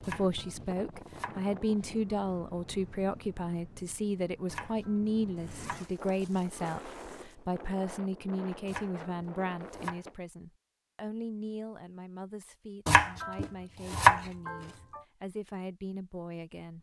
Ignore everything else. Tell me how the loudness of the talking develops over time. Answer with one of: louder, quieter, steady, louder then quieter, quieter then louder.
quieter.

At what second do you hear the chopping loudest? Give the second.
14 s.